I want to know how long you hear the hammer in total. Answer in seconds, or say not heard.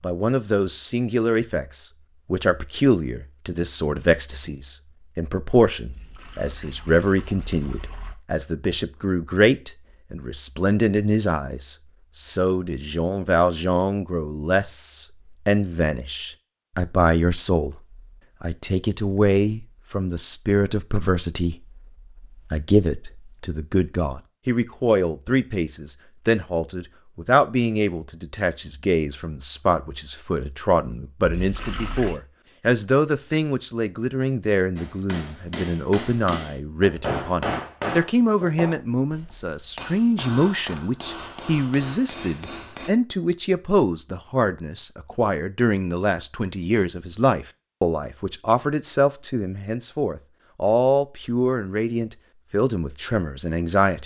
8 s.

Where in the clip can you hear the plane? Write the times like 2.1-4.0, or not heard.
not heard.